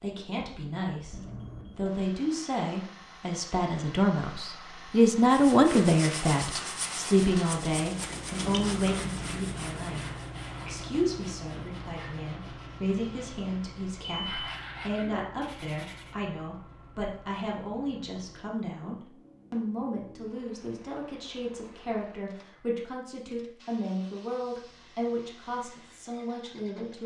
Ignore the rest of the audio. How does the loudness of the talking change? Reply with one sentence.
The loudness of the talking goes down.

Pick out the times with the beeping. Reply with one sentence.
You can hear the beeping from 1.1 to 1.9 s and from 14.1 to 14.7 s.